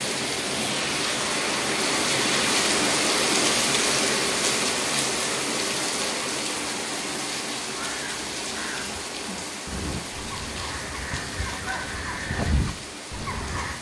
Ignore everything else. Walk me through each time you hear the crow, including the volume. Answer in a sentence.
The crow can be heard from 7.7 to 13.7 s, getting louder.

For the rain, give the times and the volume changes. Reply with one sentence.
You can hear the rain from 0.0 to 13.7 s, getting quieter.